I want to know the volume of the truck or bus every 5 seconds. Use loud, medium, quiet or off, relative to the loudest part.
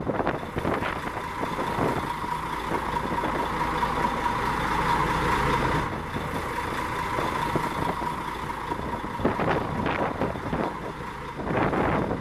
loud, loud, medium.